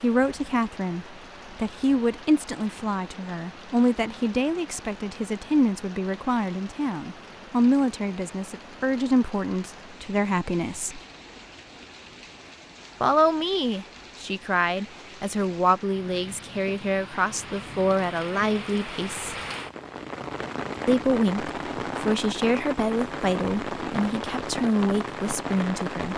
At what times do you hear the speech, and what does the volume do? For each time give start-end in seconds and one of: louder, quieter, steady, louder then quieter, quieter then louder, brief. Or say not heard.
0.0-11.0 steady
13.0-19.4 steady
20.9-26.1 steady.